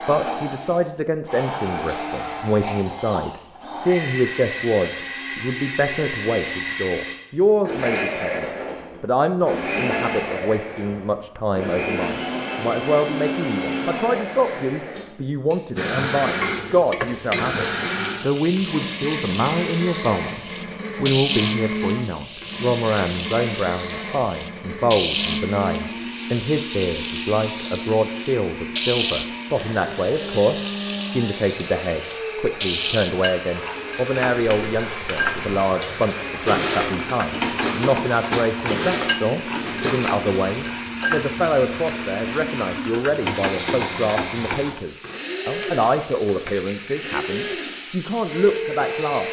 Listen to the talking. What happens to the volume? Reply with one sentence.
The volume of the talking stays about the same.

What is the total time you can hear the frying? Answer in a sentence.
The frying can be heard for 33 seconds in total.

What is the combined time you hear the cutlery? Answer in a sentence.
You can hear the cutlery for 6 seconds altogether.